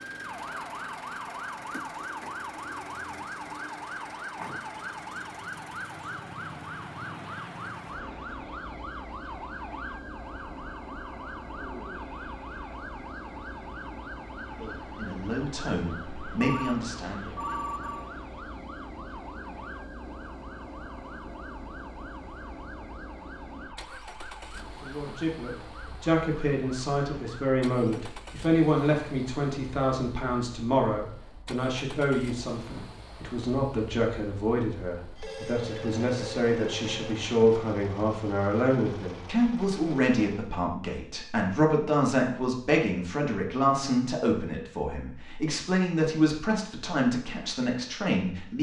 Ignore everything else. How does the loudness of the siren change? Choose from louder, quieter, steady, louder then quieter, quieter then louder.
quieter.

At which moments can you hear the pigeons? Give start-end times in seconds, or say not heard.
not heard.